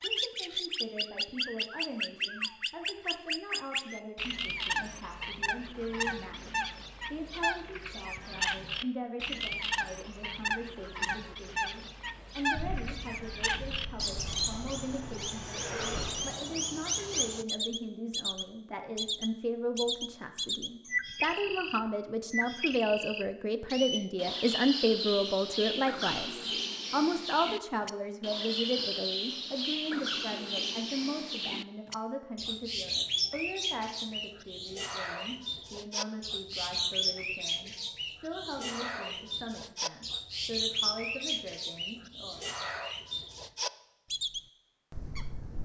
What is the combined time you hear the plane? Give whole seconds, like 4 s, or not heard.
4 s.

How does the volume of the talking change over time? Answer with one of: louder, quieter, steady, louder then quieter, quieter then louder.
louder then quieter.